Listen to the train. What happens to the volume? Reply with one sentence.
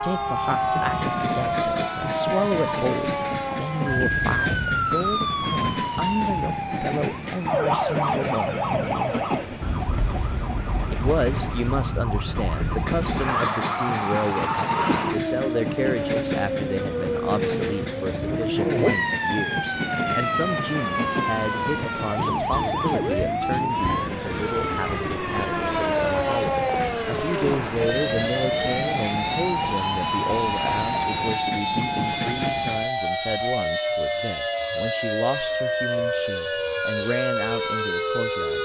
The volume of the train stays about the same.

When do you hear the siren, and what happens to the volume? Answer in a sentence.
You can hear the siren from 0.0 to 38.6 s, at a steady volume.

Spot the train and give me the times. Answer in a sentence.
You can hear the train from 0.0 to 32.9 s.